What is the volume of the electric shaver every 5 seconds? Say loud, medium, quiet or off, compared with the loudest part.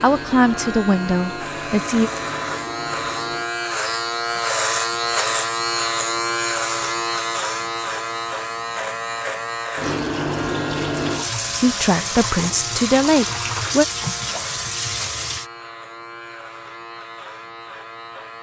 loud, loud, medium, quiet.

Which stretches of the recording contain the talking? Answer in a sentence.
You can hear the talking from 0.0 to 2.1 s and from 11.6 to 13.8 s.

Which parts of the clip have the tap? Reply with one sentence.
The tap can be heard from 0.0 to 3.5 s and from 9.8 to 15.5 s.